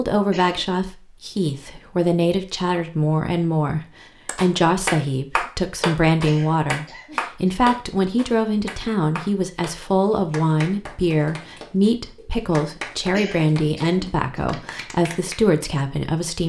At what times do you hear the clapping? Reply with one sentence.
You can hear the clapping from 4.2 to 15.4 s.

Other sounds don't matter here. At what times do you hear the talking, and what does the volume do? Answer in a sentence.
The talking can be heard from 0.0 to 16.4 s, at a steady volume.